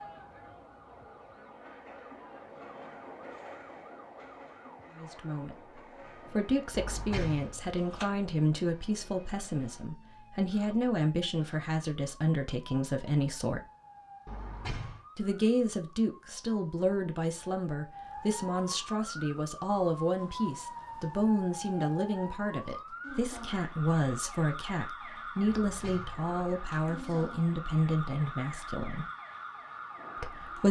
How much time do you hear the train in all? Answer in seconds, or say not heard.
7 s.